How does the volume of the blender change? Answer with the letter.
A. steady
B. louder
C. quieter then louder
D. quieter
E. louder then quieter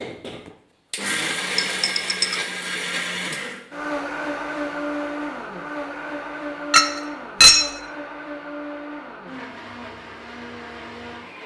D.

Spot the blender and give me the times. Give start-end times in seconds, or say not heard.
0.0-11.4.